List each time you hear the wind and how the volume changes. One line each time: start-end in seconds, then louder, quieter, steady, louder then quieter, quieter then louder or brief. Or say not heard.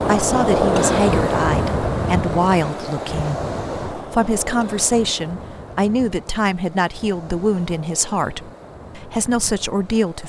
0.0-10.2 quieter.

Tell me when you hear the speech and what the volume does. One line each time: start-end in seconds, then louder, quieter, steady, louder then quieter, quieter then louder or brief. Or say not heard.
0.0-10.2 steady.